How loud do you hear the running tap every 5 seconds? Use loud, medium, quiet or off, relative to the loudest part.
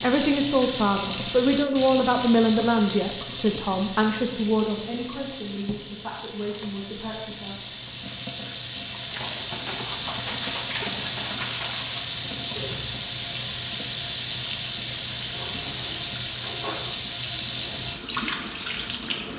loud, medium, loud, loud.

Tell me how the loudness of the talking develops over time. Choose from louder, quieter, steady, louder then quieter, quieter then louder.
quieter.